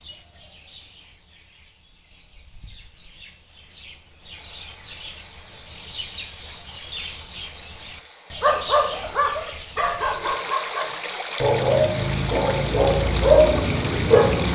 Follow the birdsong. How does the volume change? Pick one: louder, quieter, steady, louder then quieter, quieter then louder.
louder.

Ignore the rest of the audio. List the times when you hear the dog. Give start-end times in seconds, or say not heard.
8.4-14.4.